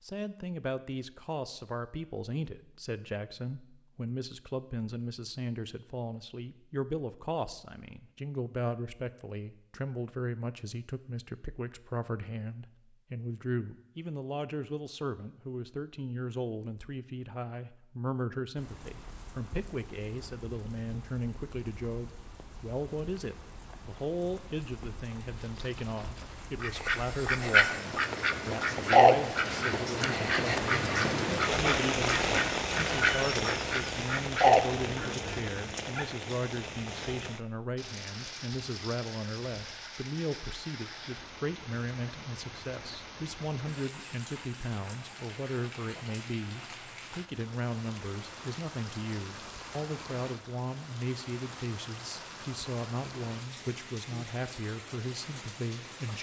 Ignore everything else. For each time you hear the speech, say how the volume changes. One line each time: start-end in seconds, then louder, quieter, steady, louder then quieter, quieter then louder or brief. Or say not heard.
0.0-56.1 steady.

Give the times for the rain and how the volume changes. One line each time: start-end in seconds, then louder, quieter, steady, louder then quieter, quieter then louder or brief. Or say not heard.
18.6-56.1 louder then quieter.